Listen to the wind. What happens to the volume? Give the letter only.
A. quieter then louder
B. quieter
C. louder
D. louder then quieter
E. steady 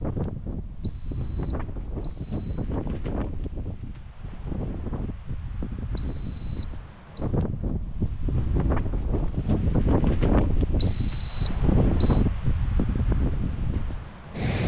C.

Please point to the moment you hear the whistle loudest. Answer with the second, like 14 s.
11 s.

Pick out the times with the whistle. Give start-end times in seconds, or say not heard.
0.8-2.7, 6.0-7.3, 10.8-12.2.